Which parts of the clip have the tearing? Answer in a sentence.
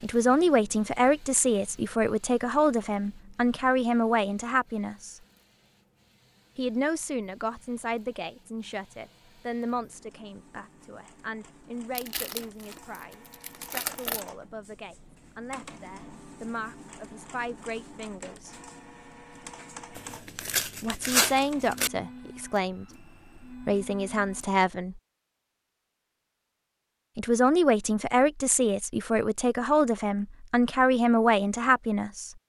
You can hear the tearing from 11.9 to 14.2 s and from 19.9 to 21.9 s.